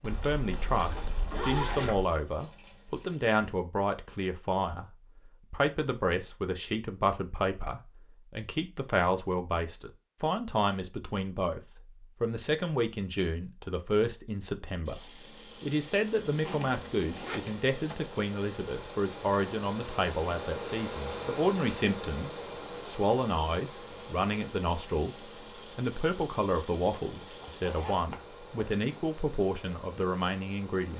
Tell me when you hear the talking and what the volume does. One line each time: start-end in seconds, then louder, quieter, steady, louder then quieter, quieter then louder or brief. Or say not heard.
0.0-30.9 steady.